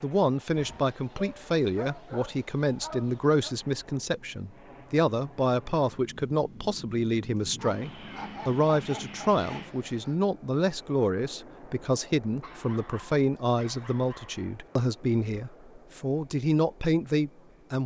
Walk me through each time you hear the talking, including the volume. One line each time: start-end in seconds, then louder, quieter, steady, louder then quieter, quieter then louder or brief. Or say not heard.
0.0-17.8 steady.